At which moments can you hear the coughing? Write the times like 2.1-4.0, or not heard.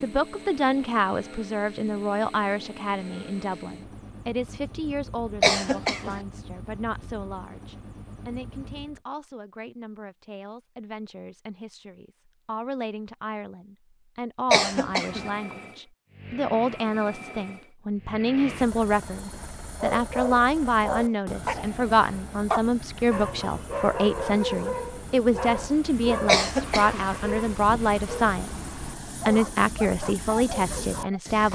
5.4-6.2, 14.5-15.3, 26.2-27.1.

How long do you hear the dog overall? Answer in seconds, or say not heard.
12 s.